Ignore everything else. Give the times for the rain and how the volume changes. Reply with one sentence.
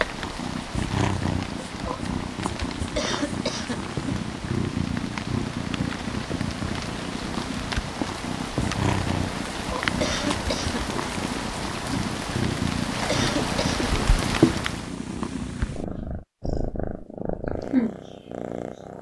The rain can be heard from 0.0 to 14.9 s, getting louder.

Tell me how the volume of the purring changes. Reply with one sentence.
The loudness of the purring stays about the same.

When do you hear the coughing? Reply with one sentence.
The coughing can be heard from 3.0 to 3.8 s, from 10.0 to 10.8 s and from 13.1 to 13.9 s.